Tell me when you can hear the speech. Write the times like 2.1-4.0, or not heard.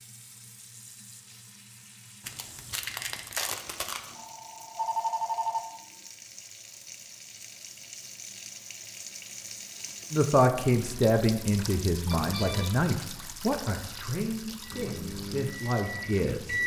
10.1-16.6.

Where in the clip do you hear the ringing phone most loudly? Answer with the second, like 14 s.
5 s.